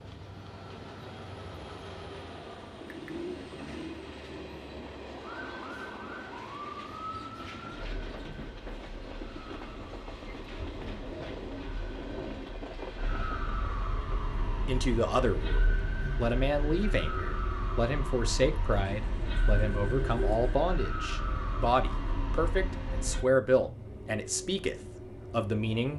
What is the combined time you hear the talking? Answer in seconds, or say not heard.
11 s.